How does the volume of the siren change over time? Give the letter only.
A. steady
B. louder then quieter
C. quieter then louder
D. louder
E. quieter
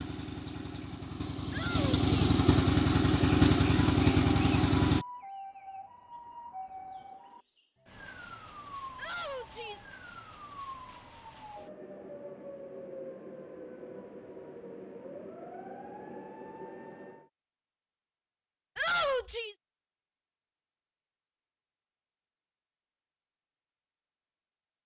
A.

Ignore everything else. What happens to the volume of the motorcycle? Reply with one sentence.
The volume of the motorcycle goes up.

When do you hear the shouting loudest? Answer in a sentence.
The volume of the shouting peaks at 19 seconds.